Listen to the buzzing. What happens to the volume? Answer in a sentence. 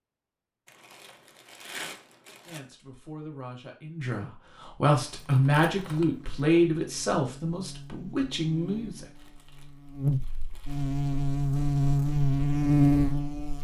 The volume of the buzzing goes up.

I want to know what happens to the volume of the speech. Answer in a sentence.
The loudness of the speech goes up, then down.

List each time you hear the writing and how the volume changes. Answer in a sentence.
You can't hear the writing here.